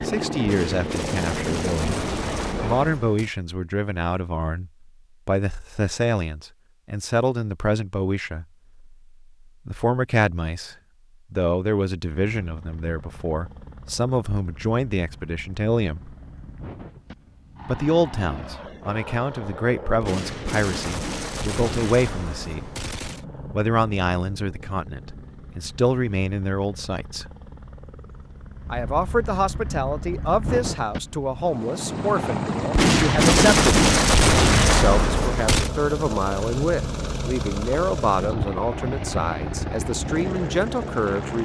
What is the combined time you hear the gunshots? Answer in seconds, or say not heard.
9 s.